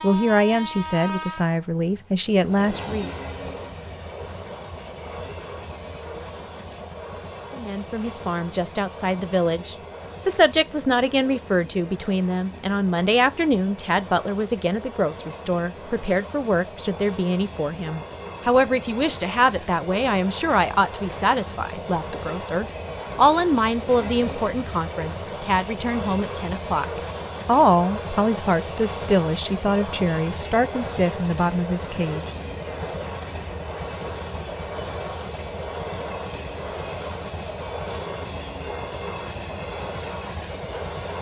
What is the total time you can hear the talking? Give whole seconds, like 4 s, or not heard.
28 s.